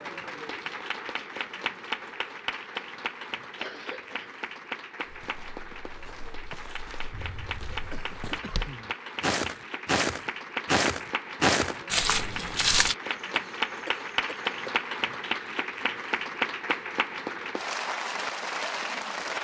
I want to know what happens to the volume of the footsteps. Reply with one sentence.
The loudness of the footsteps goes up.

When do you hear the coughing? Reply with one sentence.
You can hear the coughing from 3.5 to 4.4 s, from 7.1 to 8.9 s and from 13.1 to 14.8 s.